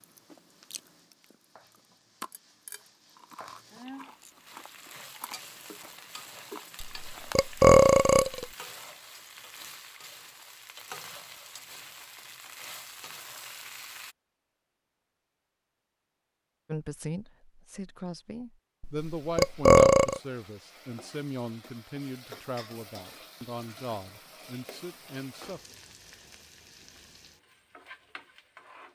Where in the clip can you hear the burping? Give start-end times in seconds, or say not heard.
6.8-8.4, 18.8-20.2.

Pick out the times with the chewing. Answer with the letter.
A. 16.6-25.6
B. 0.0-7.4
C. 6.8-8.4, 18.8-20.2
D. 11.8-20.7
B.